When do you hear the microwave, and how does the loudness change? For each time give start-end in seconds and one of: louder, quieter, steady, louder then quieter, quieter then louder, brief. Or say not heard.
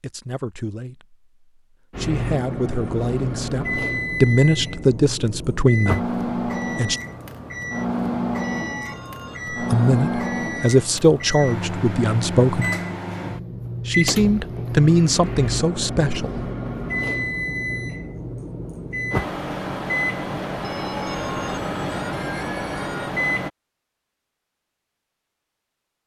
1.9-23.5 steady.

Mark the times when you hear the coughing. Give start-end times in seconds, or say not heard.
not heard.